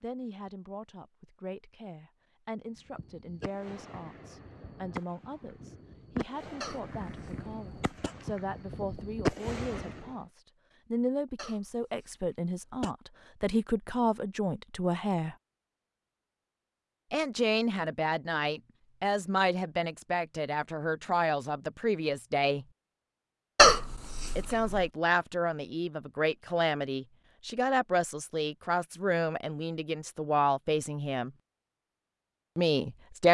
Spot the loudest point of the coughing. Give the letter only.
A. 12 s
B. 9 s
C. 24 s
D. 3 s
C.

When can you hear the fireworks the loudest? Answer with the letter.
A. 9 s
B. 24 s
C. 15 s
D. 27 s
A.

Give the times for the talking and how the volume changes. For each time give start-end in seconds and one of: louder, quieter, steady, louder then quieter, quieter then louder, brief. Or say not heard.
0.0-15.3 louder
17.1-22.6 steady
24.4-31.3 steady
32.5-33.2 brief.